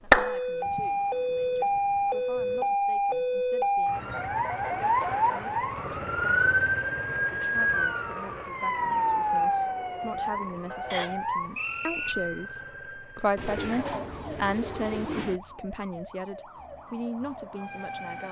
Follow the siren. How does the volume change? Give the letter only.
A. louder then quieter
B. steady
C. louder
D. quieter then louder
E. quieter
E.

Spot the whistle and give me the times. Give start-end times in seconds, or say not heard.
10.9-12.2.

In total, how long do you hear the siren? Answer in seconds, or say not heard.
18 s.